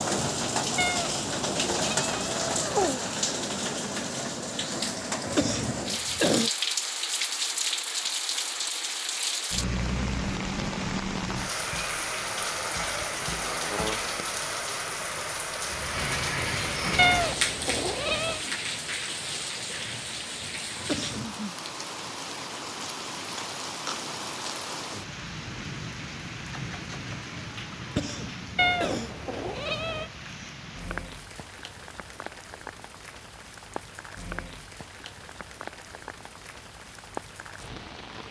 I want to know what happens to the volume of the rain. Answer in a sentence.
The volume of the rain goes down.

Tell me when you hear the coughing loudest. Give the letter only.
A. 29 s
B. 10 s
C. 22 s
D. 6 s
D.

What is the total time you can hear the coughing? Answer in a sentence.
The coughing can be heard for 3 seconds in total.